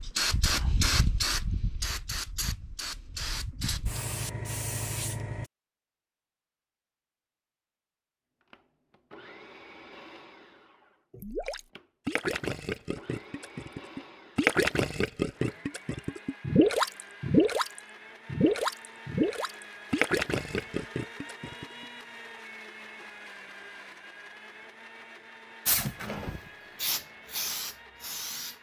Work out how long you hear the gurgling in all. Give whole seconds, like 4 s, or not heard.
11 s.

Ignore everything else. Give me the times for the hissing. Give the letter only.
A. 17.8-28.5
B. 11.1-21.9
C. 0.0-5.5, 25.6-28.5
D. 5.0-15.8
C.